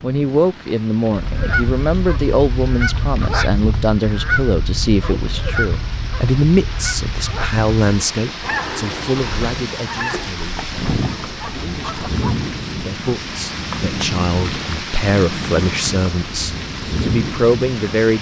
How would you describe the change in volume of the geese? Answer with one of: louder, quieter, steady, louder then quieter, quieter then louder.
quieter.